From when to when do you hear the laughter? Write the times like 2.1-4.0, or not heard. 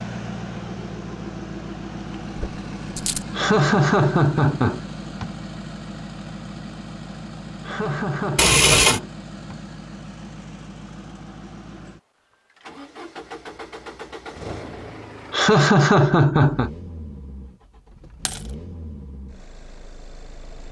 3.4-5.3, 7.6-9.6, 15.3-16.7.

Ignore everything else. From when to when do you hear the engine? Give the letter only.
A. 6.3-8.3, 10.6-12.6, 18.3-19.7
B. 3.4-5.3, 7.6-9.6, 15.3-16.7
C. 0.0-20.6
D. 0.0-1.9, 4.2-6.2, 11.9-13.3
C.